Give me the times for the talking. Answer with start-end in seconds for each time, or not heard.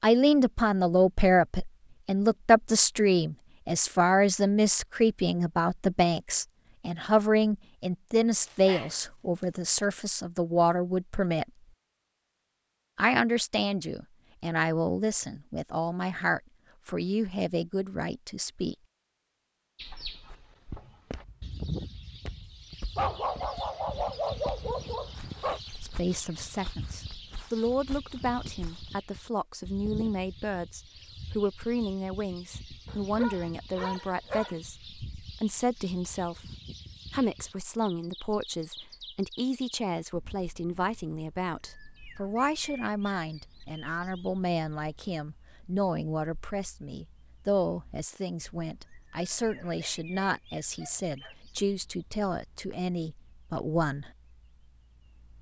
0.0-11.4, 12.9-18.8, 25.8-36.5, 37.1-54.1.